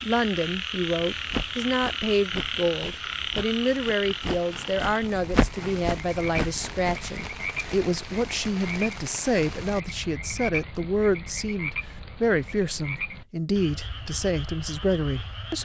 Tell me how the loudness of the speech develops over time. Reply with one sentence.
The volume of the speech stays about the same.